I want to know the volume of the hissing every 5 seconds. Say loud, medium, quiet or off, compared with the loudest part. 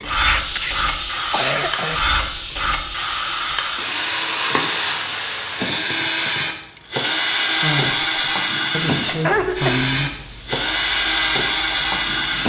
loud, loud, medium.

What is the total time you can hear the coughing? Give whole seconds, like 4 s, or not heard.
3 s.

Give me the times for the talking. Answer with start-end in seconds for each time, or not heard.
7.5-10.1.